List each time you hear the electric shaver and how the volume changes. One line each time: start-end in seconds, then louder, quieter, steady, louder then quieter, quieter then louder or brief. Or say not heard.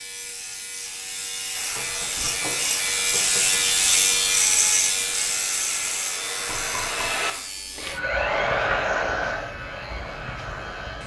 0.0-11.0 louder then quieter.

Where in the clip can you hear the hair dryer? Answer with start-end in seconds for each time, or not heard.
1.5-11.0.